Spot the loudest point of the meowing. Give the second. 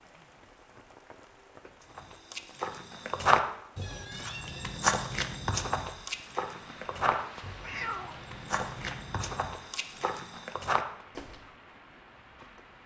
8 s.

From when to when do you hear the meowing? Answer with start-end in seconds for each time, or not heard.
3.8-4.7, 7.6-8.2.